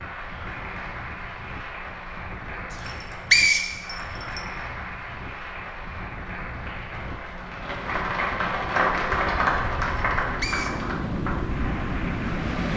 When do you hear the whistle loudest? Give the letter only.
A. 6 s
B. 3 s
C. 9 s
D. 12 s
B.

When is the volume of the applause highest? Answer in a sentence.
The volume of the applause peaks at 9 seconds.